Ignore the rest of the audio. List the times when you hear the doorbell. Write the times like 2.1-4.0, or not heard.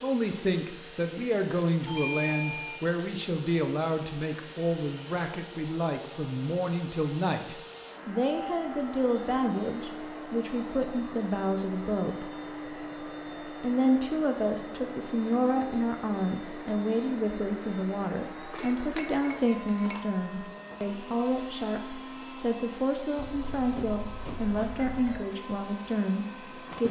1.9-2.9, 23.1-25.2.